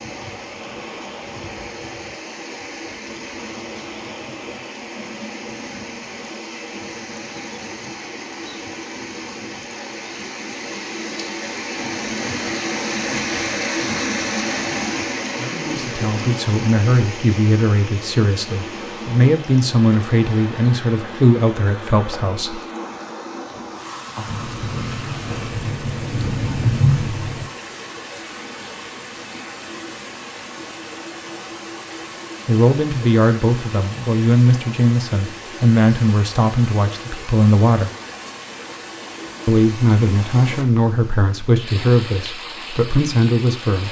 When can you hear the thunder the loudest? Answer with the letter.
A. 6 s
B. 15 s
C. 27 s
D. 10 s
C.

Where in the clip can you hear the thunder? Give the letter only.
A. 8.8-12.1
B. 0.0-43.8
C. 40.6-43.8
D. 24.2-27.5
D.